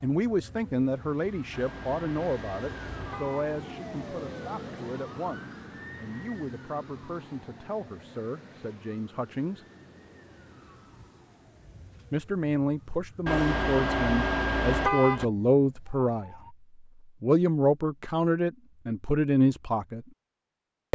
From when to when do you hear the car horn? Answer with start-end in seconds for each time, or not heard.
1.5-3.5, 13.2-15.2.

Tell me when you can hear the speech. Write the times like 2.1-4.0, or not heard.
0.0-9.7, 12.1-16.4, 17.2-20.1.